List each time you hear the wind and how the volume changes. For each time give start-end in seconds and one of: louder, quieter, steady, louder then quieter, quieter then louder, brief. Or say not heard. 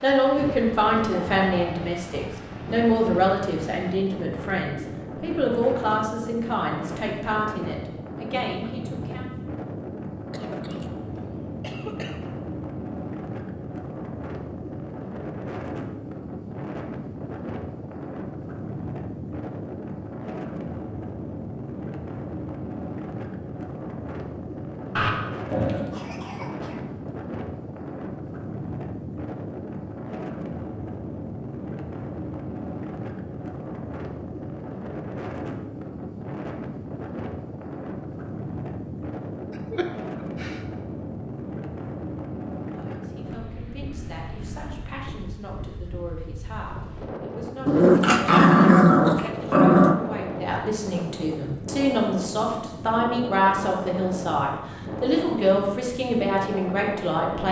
0.0-57.4 steady.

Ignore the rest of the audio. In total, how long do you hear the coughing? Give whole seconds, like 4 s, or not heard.
4 s.